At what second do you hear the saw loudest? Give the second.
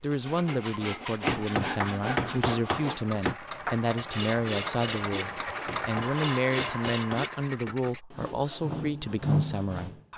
9 s.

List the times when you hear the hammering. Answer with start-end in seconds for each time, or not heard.
1.2-3.4, 5.7-7.8.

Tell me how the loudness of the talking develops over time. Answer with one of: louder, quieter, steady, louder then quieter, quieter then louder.
steady.